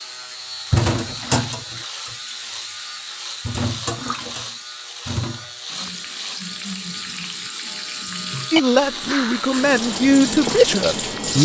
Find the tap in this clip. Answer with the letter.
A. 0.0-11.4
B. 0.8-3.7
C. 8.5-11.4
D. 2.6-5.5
A.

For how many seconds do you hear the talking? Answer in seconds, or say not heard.
3 s.